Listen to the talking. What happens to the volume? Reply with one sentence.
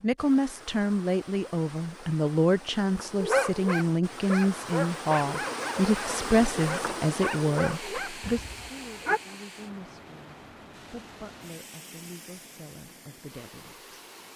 The volume of the talking goes down.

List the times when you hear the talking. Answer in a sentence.
You can hear the talking from 0.0 to 13.8 s.